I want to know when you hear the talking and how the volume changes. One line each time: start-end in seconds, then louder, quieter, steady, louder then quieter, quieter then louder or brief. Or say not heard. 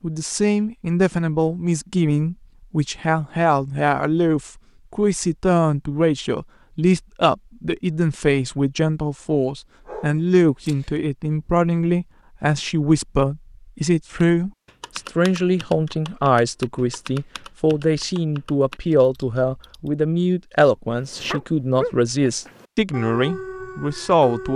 0.0-24.5 steady.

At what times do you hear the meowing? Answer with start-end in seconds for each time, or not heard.
not heard.